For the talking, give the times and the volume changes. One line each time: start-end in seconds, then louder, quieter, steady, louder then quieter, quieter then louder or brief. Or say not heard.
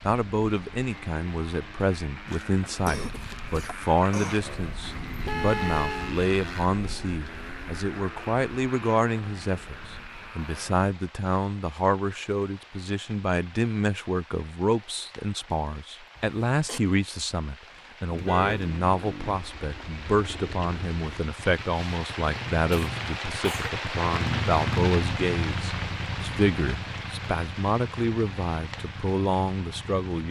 0.1-30.2 steady.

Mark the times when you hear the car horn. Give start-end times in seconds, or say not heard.
5.2-6.2, 18.1-18.6.